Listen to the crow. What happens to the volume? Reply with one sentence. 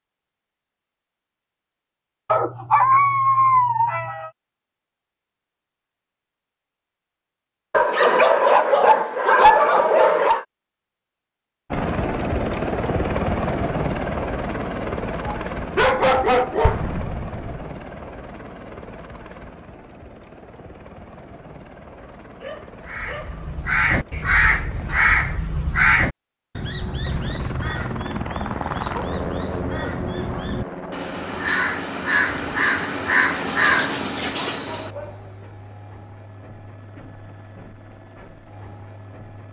The volume of the crow goes down, then up.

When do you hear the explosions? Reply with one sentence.
You can hear the explosions from 16.6 to 17.7 s.